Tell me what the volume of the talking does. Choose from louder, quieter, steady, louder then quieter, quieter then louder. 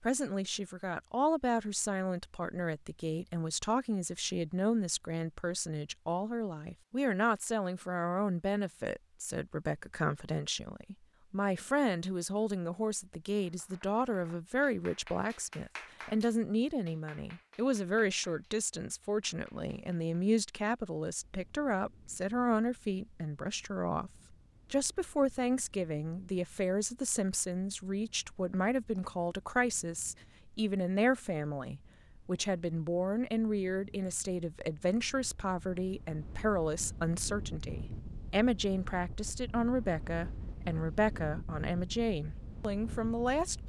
steady.